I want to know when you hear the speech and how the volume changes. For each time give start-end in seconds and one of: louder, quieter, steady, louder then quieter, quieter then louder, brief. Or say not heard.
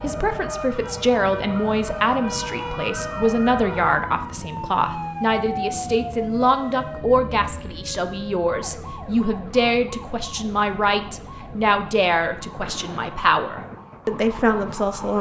0.0-15.1 steady.